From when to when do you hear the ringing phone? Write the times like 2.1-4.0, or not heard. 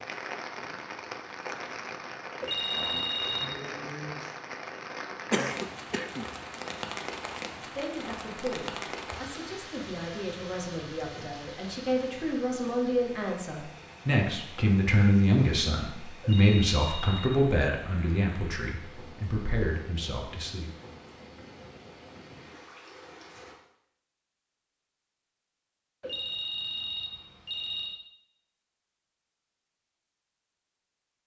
2.4-3.6, 16.2-17.4, 26.0-28.0.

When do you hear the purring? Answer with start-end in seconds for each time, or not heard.
not heard.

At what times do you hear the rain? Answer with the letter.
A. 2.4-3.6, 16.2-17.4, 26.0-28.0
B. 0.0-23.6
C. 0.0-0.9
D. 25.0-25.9
B.